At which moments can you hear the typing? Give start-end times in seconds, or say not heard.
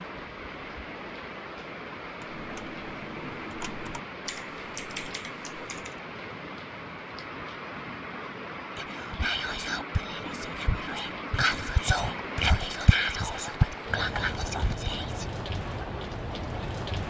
2.1-6.0.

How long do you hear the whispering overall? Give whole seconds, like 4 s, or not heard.
7 s.